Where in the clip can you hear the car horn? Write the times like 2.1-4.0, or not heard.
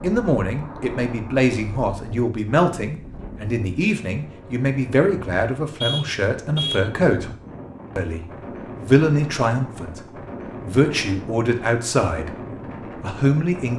5.8-6.9.